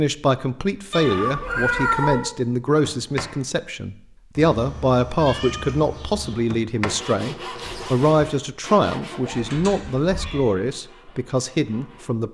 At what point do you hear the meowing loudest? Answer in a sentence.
The loudest moment of the meowing is at 2 seconds.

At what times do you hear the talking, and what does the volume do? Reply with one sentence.
The talking can be heard from 0.0 to 12.2 s, at a steady volume.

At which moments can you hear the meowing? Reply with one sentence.
The meowing can be heard from 0.9 to 2.3 s, from 4.3 to 6.3 s and from 9.2 to 10.5 s.